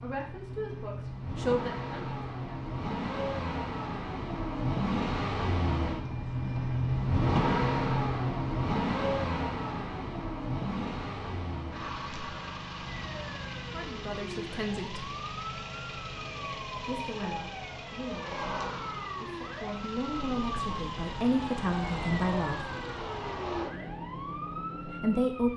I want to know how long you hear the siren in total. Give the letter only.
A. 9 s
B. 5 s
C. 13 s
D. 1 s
C.